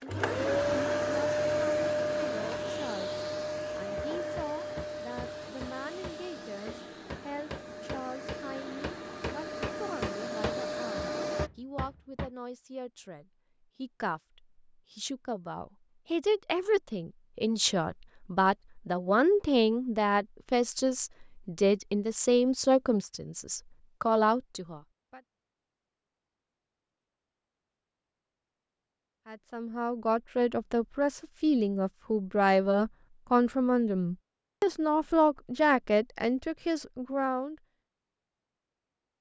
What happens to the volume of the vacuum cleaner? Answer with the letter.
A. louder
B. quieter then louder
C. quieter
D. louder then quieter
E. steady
B.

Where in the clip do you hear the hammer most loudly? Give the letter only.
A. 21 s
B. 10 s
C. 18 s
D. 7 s
B.